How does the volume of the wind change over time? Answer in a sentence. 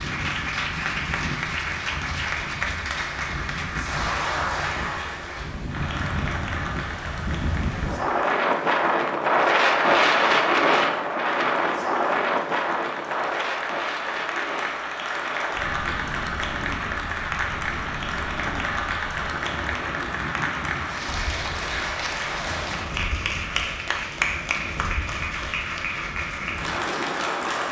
The loudness of the wind goes up, then down.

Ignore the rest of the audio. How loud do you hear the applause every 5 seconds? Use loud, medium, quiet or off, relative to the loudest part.
loud, medium, medium, loud, loud, loud.